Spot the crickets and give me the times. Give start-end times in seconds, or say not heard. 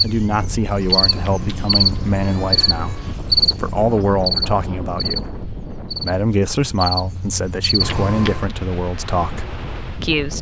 0.0-8.0.